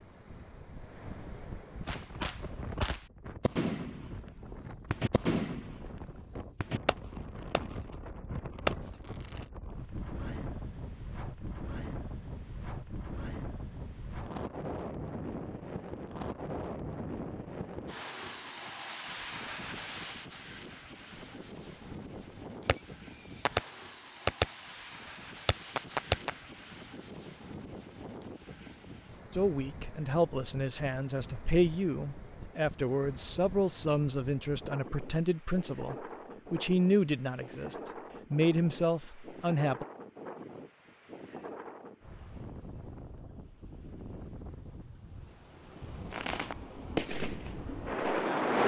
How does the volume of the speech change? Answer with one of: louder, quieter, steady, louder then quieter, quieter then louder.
steady.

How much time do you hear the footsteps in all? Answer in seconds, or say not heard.
not heard.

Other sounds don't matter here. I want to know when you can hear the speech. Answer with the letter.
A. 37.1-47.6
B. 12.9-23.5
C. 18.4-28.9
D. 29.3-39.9
D.